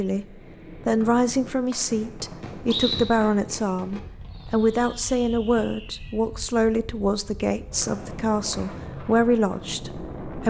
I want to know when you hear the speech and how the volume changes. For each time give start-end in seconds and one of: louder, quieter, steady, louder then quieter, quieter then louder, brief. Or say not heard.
0.0-10.4 steady.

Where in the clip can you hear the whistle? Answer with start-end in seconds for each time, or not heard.
1.0-3.0, 7.8-8.7.